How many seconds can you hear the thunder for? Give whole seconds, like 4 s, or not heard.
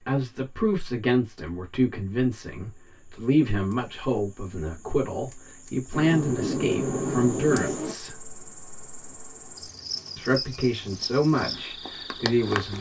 2 s.